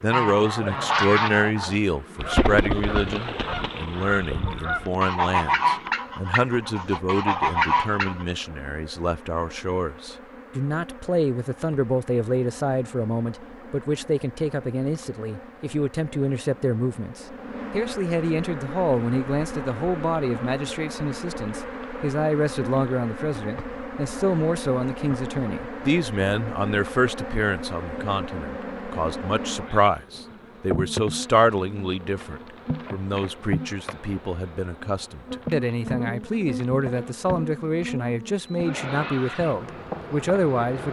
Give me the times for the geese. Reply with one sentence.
The geese can be heard from 0.1 to 8.2 s.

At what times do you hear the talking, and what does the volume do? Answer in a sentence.
The talking can be heard from 0.0 to 40.8 s, at a steady volume.